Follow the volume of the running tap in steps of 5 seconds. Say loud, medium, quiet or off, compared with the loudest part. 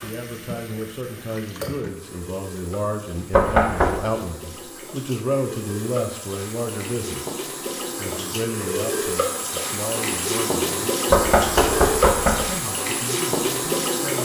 quiet, medium, loud.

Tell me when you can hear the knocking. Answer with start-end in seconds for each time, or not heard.
3.3-4.0, 11.1-12.4.